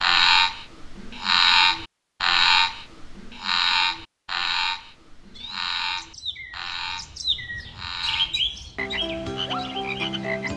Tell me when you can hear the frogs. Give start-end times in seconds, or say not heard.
0.0-10.5.